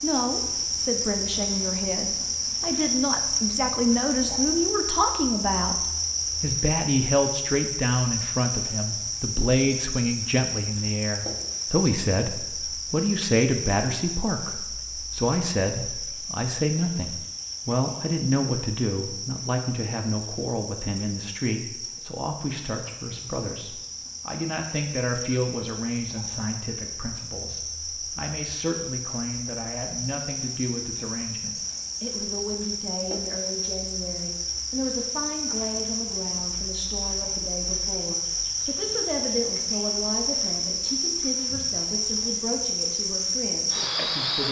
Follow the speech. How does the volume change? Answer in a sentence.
The volume of the speech goes down.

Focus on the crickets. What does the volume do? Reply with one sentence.
The volume of the crickets goes down, then up.